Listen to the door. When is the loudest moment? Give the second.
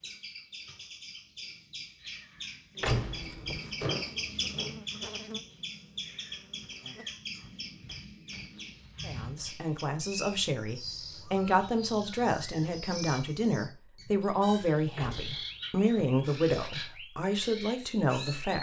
3 s.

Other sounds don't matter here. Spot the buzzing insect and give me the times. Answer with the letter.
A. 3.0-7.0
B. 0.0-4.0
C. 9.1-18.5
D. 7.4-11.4
A.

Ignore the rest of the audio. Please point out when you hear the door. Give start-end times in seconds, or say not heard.
2.8-4.0, 14.9-16.2.